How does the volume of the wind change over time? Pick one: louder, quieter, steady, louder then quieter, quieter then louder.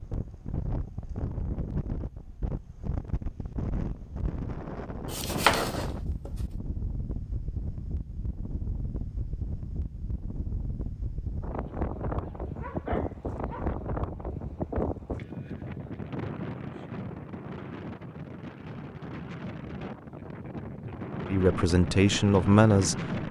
steady.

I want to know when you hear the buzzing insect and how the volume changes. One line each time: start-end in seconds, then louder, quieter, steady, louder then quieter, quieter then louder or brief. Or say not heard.
not heard.